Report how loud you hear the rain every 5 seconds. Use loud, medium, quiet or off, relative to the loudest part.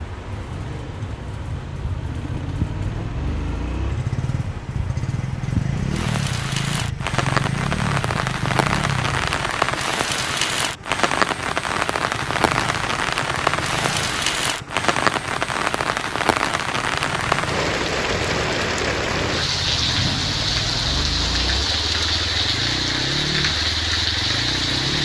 quiet, loud, loud, loud, loud.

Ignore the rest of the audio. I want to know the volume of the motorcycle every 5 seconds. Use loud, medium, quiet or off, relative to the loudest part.
medium, loud, medium, medium, medium.